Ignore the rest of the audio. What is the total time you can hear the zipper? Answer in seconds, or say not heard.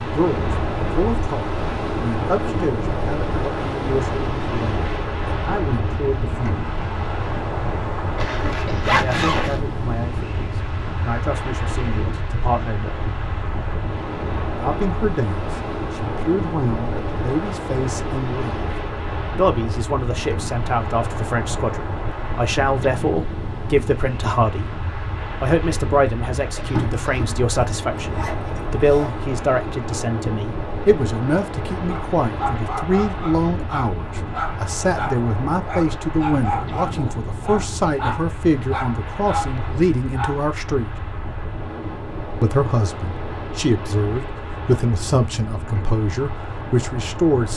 4 s.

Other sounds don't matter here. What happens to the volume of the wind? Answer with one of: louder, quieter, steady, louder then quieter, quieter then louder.
quieter.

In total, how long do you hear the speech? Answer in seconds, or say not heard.
41 s.